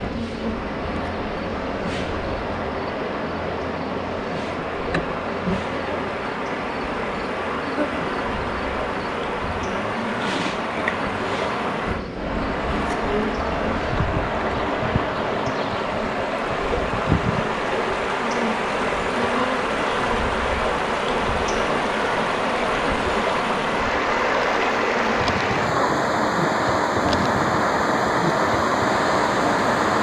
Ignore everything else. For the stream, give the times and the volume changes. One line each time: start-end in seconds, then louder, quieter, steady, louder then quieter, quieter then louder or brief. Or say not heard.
0.0-29.9 louder.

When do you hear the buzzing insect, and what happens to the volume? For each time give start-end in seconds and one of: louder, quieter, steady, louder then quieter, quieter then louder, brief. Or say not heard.
0.0-29.9 steady.